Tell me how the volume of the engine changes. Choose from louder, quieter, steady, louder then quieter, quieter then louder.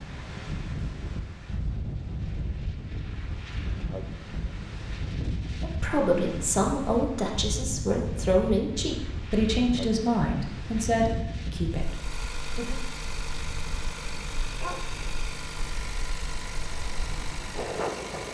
steady.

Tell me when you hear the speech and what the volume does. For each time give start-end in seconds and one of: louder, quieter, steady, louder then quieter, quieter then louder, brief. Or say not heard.
5.6-12.8 quieter.